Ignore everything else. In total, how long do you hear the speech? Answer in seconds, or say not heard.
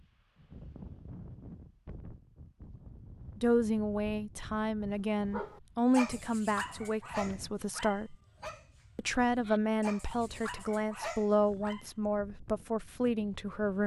10 s.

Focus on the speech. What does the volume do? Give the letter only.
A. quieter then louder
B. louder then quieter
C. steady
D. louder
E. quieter
C.